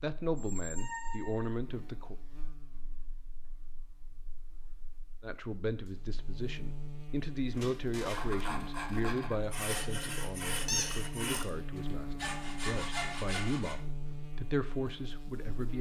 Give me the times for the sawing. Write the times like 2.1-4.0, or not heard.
8.0-13.8.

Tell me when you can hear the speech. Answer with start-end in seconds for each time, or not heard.
0.0-2.1, 5.2-15.7.